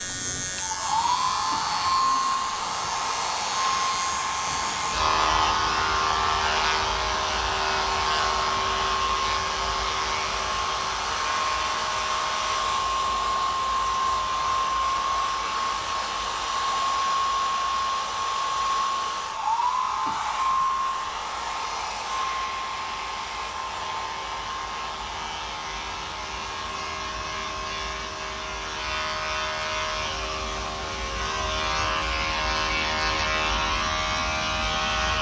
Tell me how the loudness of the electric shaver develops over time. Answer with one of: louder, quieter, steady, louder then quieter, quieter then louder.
quieter then louder.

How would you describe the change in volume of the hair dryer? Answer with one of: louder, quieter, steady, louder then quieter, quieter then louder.
quieter.